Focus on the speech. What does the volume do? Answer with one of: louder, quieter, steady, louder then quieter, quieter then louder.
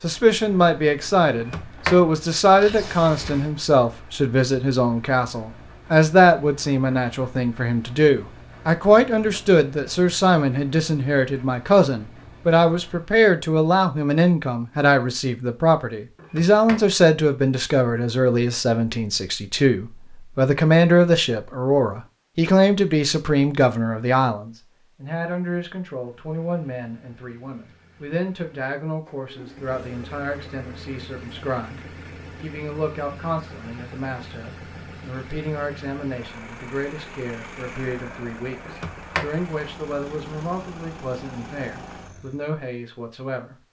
quieter.